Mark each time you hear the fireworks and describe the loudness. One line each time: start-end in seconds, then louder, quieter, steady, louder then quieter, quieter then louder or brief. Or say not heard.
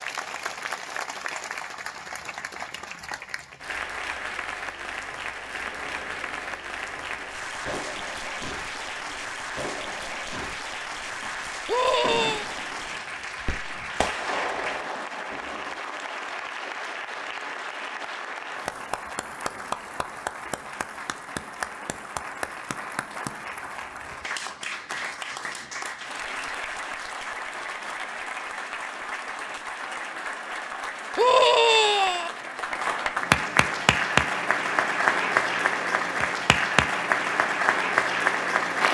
5.4-15.8 louder.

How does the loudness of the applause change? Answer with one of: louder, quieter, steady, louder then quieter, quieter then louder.
louder.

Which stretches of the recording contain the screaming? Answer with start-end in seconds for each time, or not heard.
11.7-12.4, 31.1-32.3.